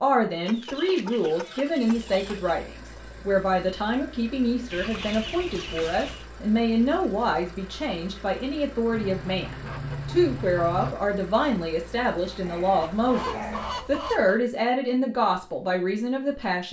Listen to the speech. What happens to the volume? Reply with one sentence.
The loudness of the speech stays about the same.